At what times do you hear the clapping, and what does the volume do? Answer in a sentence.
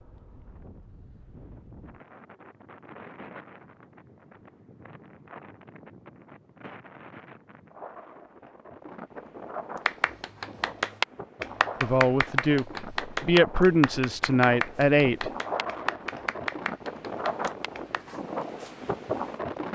You can hear the clapping from 9.8 to 18.1 s, getting quieter.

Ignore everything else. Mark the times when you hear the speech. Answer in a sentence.
The speech can be heard from 11.8 to 15.3 s.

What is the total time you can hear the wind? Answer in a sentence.
You can hear the wind for 20 seconds altogether.